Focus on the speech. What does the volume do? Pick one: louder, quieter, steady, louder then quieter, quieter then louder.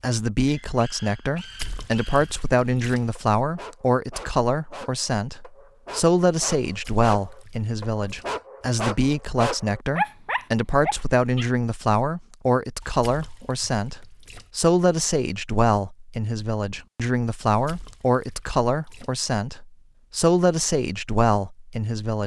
steady.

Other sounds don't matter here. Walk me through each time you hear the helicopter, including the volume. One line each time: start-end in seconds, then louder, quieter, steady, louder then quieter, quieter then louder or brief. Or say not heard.
not heard.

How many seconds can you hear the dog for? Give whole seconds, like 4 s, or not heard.
11 s.